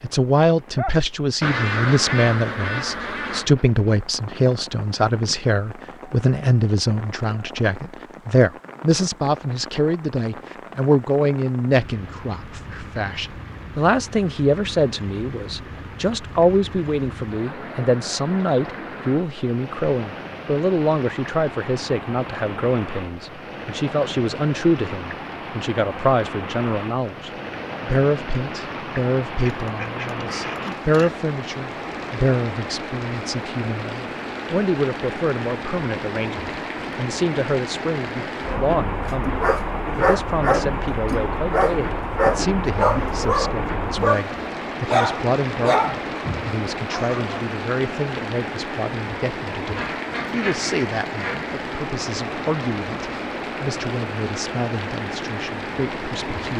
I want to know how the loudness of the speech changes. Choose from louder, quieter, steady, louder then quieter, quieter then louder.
quieter.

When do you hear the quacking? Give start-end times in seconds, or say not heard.
1.4-3.5, 29.4-31.2, 49.8-51.5.